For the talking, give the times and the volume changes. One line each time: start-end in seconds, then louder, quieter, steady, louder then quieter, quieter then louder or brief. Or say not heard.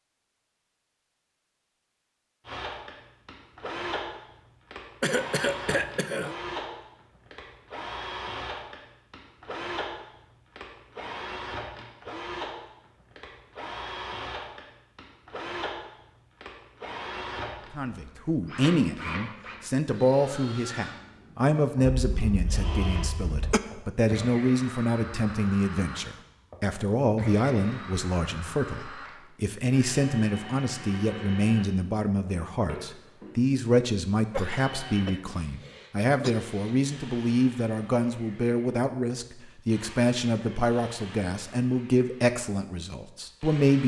17.8-43.8 steady.